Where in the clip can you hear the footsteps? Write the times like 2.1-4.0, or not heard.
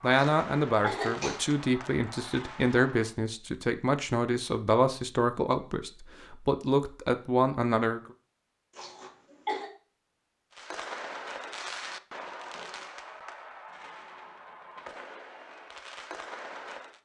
not heard.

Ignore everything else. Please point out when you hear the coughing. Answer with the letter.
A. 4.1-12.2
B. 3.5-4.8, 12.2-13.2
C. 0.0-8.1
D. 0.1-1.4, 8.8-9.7
D.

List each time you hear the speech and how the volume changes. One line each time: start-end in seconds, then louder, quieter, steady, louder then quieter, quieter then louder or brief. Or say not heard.
0.0-8.1 steady.